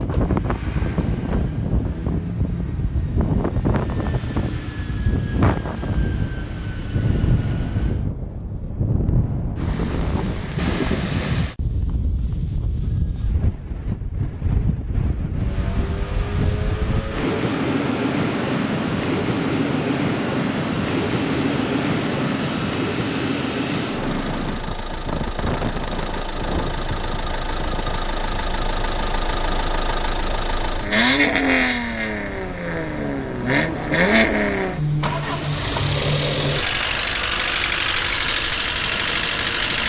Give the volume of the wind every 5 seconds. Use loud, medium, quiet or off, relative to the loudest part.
loud, loud, loud, loud, loud, medium, quiet, quiet.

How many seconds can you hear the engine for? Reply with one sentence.
The engine can be heard for 33 seconds in total.